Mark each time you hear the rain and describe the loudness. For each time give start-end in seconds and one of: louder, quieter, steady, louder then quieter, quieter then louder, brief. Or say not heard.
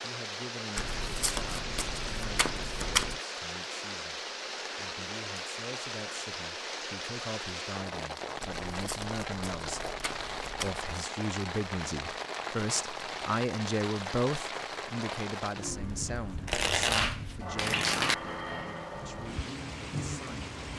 0.0-20.7 steady.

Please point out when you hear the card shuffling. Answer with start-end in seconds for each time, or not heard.
0.8-3.2, 8.4-10.8, 16.4-18.1.